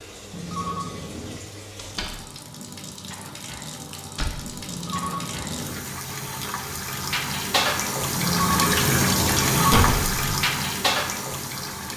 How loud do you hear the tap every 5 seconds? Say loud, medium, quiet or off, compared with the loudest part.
quiet, loud, loud.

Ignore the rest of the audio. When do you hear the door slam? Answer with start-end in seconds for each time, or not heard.
1.8-2.2, 4.2-4.6, 9.7-10.2.